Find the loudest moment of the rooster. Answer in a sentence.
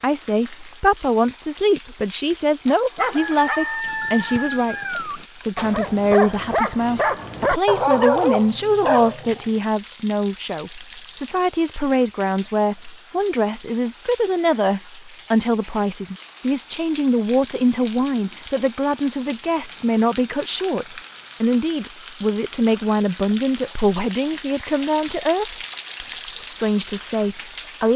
The volume of the rooster peaks at 4 seconds.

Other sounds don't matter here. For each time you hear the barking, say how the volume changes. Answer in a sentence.
The barking can be heard from 2.6 to 9.4 s, getting louder.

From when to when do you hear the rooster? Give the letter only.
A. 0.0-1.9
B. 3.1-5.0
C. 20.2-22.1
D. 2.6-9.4
B.